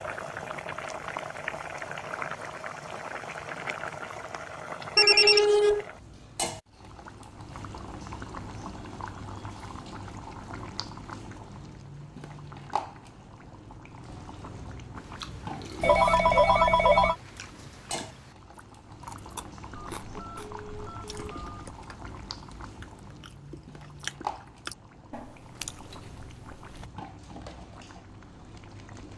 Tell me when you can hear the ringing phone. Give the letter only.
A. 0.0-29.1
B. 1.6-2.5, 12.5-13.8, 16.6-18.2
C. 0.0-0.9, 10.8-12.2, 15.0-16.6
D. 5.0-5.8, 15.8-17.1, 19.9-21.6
D.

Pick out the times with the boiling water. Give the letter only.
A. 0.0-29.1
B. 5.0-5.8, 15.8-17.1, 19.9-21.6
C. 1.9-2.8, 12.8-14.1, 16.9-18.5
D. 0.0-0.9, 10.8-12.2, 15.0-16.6
A.